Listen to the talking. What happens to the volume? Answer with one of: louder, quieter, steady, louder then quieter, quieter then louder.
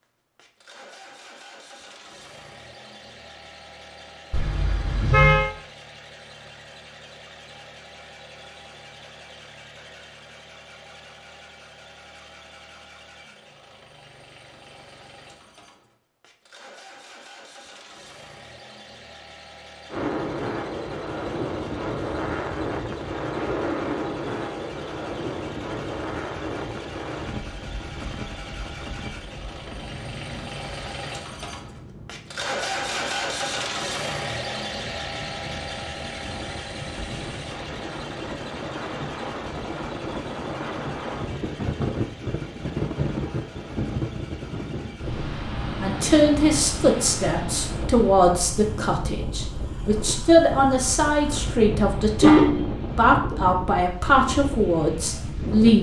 steady.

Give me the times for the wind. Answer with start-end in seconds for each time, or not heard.
19.9-55.7.